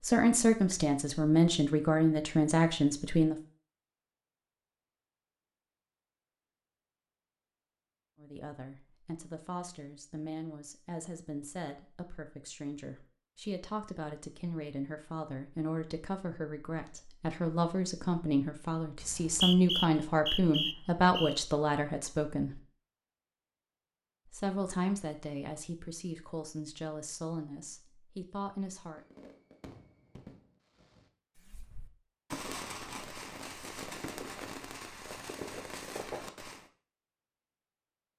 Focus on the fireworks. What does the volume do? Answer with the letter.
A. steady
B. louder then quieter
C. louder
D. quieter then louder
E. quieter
D.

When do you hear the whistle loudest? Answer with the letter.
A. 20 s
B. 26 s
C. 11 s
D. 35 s
A.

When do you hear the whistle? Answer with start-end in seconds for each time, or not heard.
19.0-21.4.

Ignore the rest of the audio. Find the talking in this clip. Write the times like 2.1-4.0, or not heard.
0.0-3.4, 8.2-22.6, 24.3-29.0.